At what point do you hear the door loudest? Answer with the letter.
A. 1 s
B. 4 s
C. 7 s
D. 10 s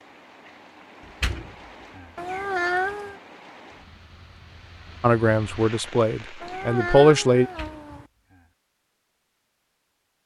A.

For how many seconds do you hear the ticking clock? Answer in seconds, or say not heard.
not heard.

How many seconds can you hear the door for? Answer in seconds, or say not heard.
2 s.